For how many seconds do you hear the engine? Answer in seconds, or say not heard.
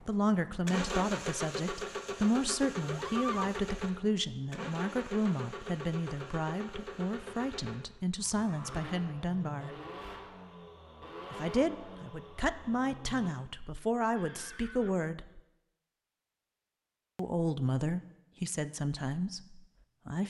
13 s.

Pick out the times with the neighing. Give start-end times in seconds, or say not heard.
2.8-3.6, 8.5-8.9, 14.2-15.1.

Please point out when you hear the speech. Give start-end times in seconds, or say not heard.
0.1-9.8, 11.3-15.4, 17.1-20.2.